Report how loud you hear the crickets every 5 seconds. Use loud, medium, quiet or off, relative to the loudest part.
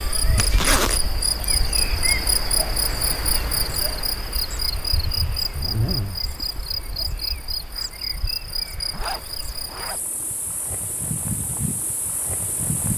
loud, loud, medium.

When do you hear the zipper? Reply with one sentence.
The zipper can be heard from 0.3 to 1.0 s, from 5.5 to 6.2 s and from 8.9 to 10.0 s.